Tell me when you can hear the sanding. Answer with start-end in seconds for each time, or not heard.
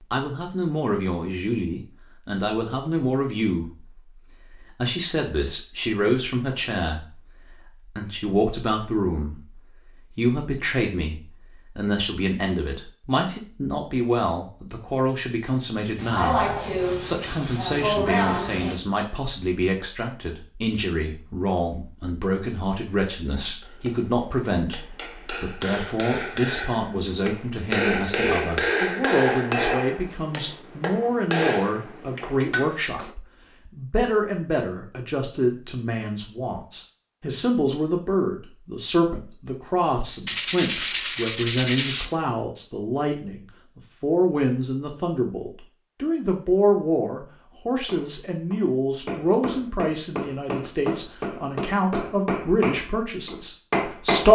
15.9-18.8, 40.2-42.1.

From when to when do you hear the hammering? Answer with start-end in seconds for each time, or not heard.
23.6-33.1, 47.9-54.3.